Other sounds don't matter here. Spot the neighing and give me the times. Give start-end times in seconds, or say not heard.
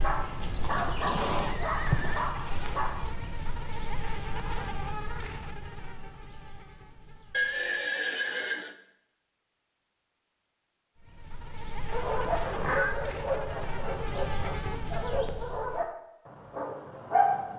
0.3-2.2, 7.3-8.8, 12.4-13.0.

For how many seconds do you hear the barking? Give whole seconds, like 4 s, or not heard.
9 s.